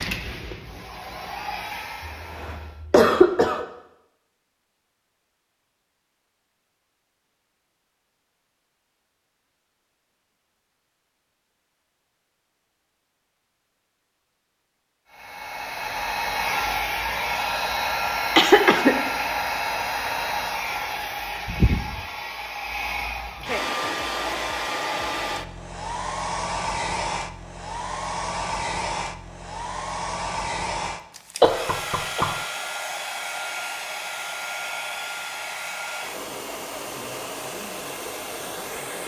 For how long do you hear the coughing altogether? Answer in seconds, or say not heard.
3 s.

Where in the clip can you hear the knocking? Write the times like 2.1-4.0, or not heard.
31.4-32.5.